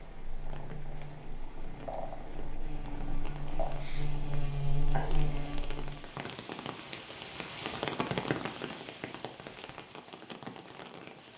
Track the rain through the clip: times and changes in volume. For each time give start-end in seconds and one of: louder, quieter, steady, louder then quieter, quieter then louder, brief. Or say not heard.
0.0-11.3 louder then quieter.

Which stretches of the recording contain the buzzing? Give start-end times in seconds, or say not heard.
0.0-6.0.